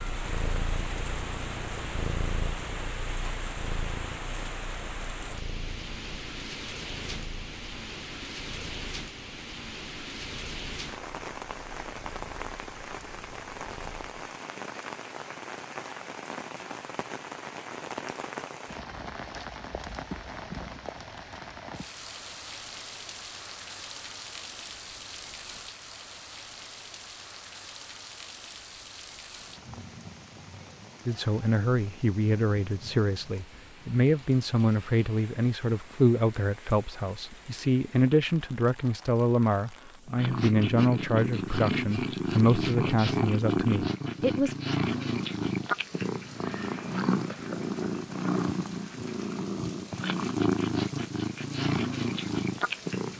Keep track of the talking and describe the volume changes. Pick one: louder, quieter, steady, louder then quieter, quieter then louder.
steady.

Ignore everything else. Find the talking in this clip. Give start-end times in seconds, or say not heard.
31.1-44.5.